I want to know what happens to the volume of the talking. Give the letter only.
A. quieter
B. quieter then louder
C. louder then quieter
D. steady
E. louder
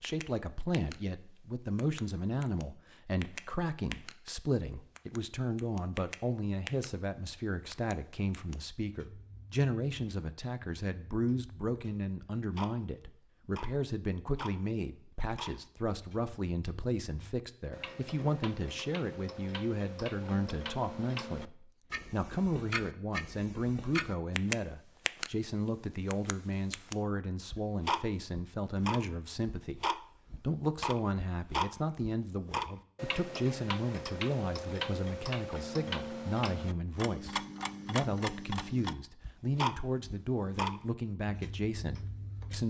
D.